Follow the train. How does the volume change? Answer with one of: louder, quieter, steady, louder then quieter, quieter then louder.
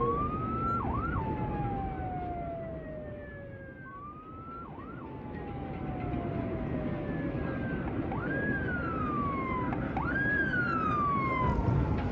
quieter then louder.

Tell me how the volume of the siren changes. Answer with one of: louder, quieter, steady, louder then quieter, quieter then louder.
quieter then louder.